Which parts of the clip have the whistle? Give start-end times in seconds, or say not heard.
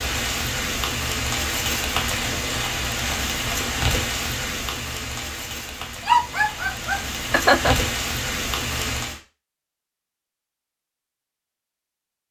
not heard.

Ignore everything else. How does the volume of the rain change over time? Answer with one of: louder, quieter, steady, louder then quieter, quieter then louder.
quieter then louder.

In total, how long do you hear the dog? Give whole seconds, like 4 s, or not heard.
2 s.